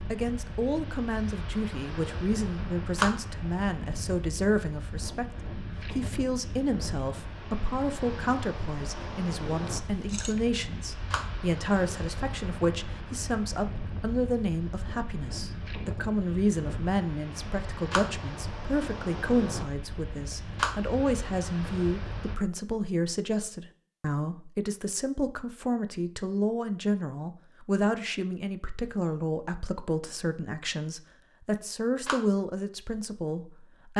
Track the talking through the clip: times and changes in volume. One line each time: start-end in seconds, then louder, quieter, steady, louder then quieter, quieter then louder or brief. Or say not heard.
0.0-33.9 steady.